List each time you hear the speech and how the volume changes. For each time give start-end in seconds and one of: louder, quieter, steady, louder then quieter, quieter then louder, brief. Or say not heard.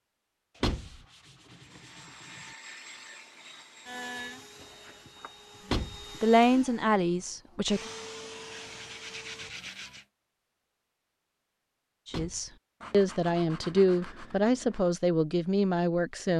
6.2-7.8 brief
12.1-16.3 steady.